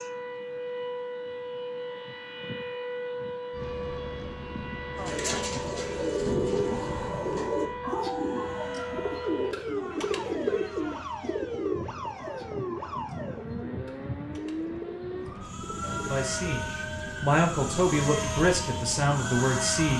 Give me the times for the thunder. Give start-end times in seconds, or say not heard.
5.0-7.5.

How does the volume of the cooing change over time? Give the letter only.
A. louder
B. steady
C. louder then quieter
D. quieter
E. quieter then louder
D.